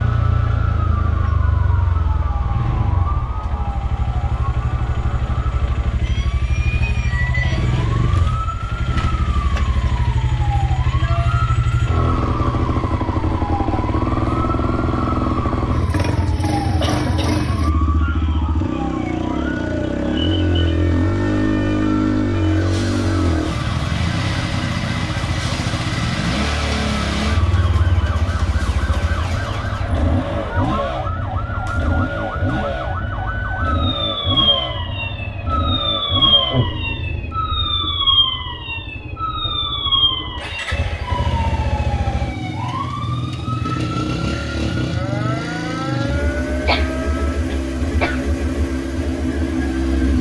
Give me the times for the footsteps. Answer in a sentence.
You can't hear the footsteps here.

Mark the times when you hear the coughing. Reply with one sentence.
The coughing can be heard from 9.4 to 10.0 s, from 16.8 to 17.4 s and from 46.6 to 48.2 s.